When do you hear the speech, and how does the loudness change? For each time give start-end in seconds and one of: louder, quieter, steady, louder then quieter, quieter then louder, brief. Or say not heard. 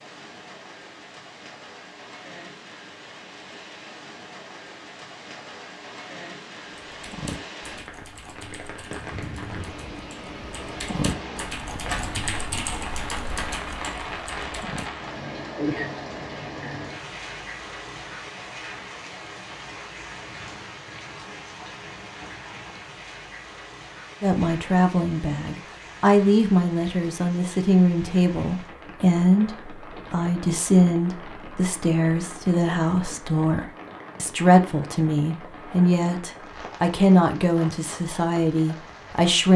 24.2-39.5 steady.